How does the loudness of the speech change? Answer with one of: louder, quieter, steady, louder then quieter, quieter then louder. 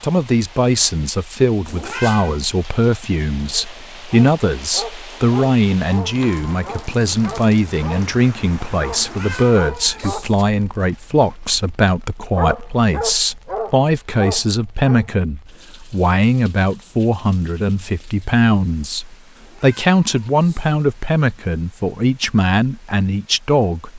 steady.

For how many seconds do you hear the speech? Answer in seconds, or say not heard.
24 s.